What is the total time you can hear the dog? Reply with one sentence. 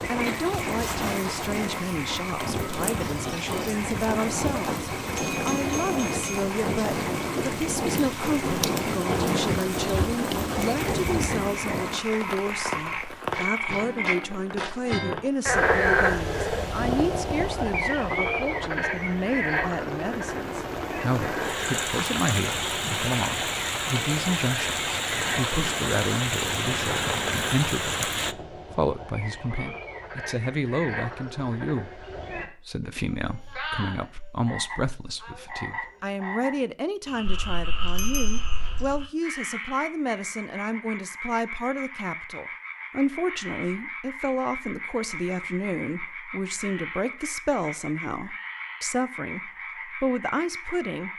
The dog can't be heard in this clip.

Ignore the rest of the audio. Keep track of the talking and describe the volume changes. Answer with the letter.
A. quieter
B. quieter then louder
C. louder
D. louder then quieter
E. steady
E.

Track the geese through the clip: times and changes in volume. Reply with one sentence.
You can't hear the geese here.